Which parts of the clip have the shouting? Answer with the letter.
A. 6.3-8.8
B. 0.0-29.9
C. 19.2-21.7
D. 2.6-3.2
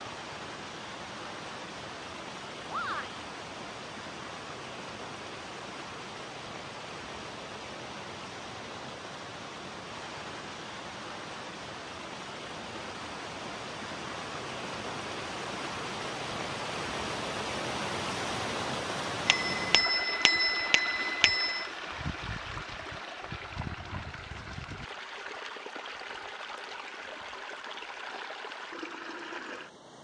D.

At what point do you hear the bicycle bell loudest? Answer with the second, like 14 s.
20 s.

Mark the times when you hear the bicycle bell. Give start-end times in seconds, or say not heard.
19.2-21.7.